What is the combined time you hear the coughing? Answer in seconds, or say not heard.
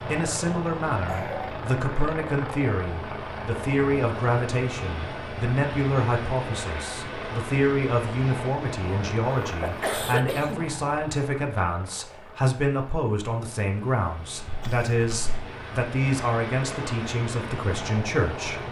3 s.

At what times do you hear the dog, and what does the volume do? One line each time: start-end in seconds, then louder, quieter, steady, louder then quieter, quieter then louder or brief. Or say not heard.
not heard.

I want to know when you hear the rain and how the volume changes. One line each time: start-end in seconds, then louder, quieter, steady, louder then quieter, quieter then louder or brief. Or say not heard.
not heard.